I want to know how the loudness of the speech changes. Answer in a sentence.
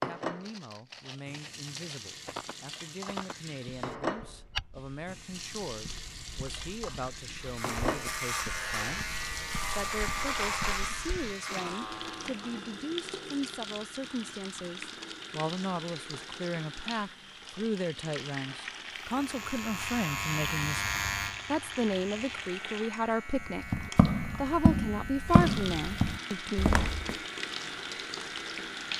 The volume of the speech goes up.